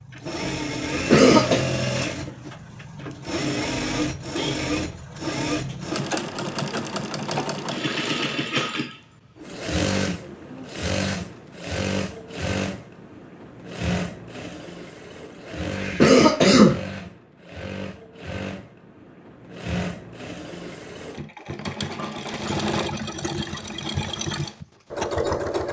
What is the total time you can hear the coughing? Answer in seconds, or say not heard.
2 s.